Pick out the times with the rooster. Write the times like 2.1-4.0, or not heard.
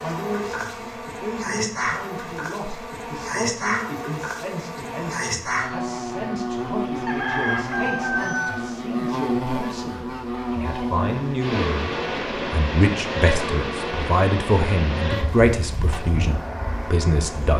7.0-8.6.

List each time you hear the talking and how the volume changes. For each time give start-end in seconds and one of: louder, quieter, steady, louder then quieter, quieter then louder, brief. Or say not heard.
0.0-17.5 louder.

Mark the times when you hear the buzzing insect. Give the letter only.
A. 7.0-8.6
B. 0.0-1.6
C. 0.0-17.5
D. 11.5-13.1
C.